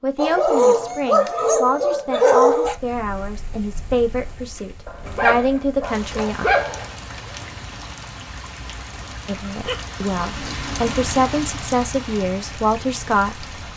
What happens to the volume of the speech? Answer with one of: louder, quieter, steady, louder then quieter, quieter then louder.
steady.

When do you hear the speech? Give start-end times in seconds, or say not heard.
0.0-6.5, 9.2-13.7.